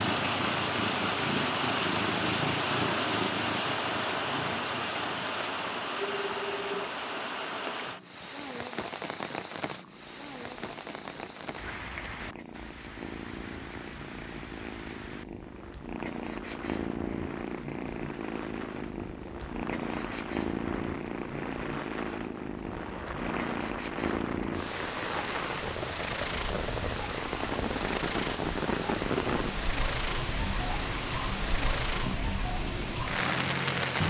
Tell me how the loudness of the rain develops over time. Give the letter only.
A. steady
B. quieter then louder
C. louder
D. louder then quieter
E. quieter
B.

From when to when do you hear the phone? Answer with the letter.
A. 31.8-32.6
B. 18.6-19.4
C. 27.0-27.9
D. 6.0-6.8
D.